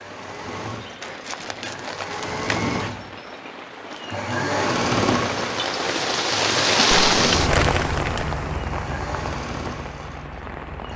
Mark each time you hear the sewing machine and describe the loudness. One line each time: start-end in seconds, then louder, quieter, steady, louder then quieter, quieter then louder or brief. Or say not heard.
0.0-10.9 louder then quieter.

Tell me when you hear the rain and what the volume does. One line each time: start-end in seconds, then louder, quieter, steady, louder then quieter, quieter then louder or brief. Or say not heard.
0.0-10.9 louder then quieter.